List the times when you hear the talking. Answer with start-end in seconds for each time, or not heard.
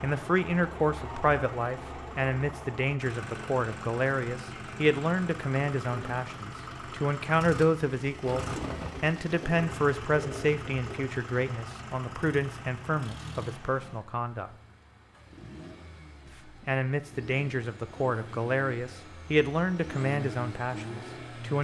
0.0-14.5, 16.4-21.6.